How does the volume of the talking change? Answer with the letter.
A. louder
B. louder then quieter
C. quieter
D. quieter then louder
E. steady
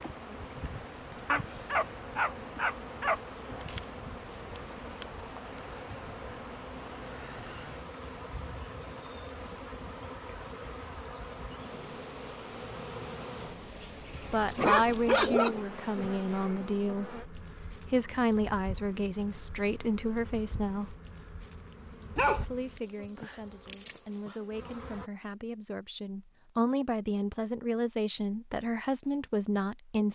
D.